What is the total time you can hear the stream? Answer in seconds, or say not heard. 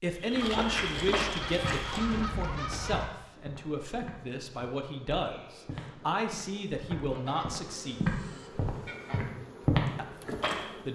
not heard.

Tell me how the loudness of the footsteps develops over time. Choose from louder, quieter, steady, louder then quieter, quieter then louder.
quieter then louder.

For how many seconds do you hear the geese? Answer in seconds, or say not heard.
5 s.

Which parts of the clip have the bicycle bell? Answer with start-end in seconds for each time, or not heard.
not heard.